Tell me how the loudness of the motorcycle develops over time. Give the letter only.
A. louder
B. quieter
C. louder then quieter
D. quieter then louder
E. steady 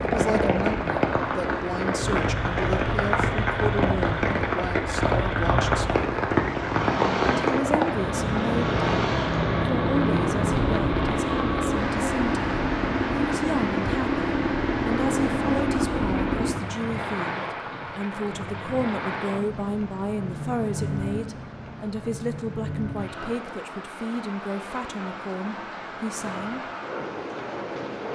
A.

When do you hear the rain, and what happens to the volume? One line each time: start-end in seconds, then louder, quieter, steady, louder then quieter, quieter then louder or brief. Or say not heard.
0.0-28.1 quieter.